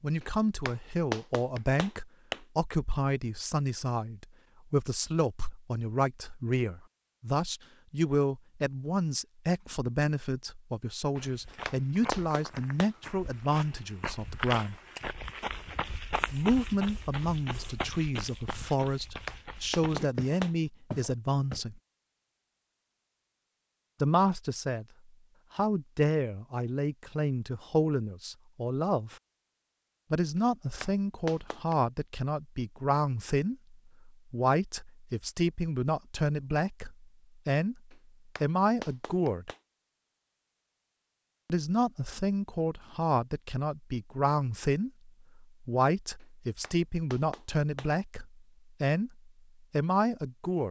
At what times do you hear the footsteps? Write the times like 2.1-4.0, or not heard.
11.2-21.6.